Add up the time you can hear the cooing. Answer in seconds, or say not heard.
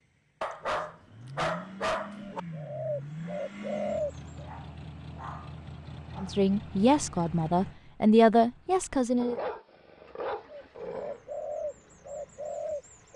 5 s.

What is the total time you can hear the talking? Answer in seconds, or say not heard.
3 s.